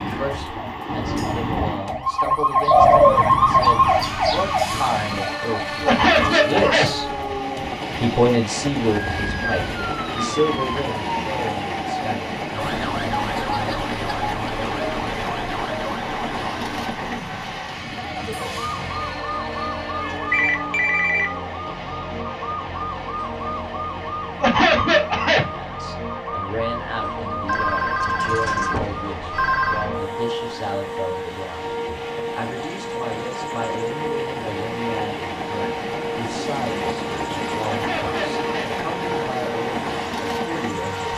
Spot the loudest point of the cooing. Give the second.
3 s.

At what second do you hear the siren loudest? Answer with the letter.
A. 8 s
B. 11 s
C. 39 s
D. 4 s
D.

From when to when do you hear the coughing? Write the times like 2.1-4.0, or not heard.
5.8-6.9, 24.4-25.4, 37.6-38.7.